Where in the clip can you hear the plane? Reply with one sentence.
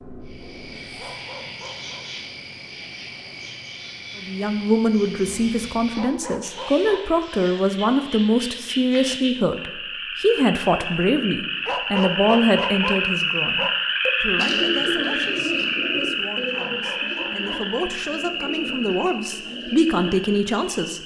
You can't hear the plane here.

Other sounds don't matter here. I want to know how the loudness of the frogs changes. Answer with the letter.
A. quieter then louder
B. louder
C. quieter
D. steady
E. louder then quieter
E.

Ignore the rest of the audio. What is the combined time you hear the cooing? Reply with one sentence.
You can hear the cooing for 6 seconds altogether.